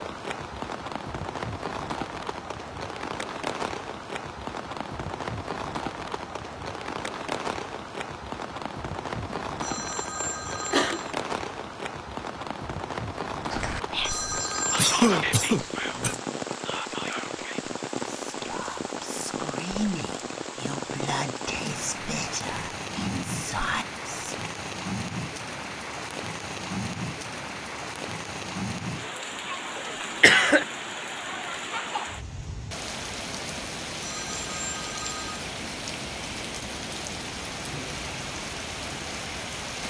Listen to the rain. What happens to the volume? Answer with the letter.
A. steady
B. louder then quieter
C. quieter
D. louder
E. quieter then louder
A.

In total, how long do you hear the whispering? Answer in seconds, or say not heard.
11 s.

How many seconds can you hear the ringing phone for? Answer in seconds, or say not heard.
4 s.